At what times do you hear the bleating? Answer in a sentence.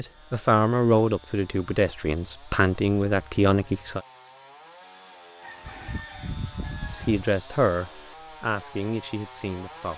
You can hear the bleating from 5.6 to 7.2 s.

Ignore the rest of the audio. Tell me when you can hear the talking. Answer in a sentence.
The talking can be heard from 0.0 to 4.0 s and from 6.8 to 9.9 s.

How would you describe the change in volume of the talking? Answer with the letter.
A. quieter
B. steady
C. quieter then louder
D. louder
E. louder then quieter
A.